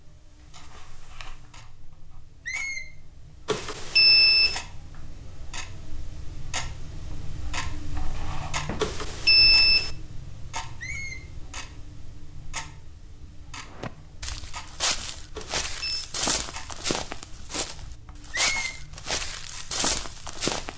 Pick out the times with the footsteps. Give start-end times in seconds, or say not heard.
13.7-20.7.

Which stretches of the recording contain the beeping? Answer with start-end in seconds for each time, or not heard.
3.5-4.6, 8.8-9.9, 15.3-16.1.